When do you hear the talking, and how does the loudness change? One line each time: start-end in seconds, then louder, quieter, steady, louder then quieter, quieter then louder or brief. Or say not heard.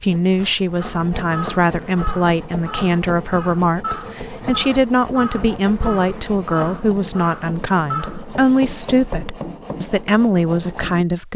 0.0-11.3 steady.